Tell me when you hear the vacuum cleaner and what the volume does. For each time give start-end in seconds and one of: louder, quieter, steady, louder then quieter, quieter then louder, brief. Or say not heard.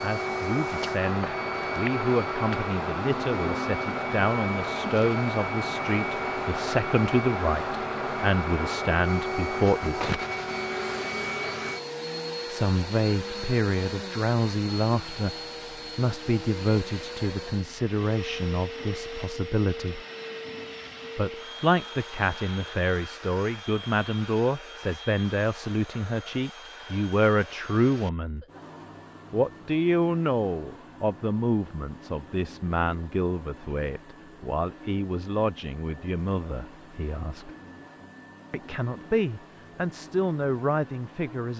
0.0-41.5 quieter.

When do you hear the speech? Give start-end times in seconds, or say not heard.
0.0-10.1, 12.4-20.0, 21.1-28.4, 29.3-37.5, 38.5-41.5.